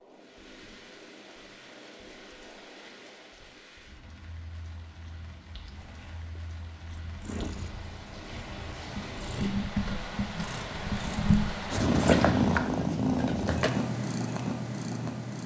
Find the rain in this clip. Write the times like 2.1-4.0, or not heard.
0.0-12.7.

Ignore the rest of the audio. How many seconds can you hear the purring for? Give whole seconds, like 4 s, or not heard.
10 s.